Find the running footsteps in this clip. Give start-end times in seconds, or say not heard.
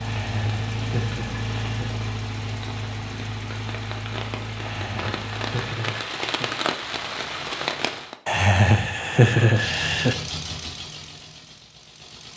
not heard.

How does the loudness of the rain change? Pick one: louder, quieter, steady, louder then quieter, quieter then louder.
louder.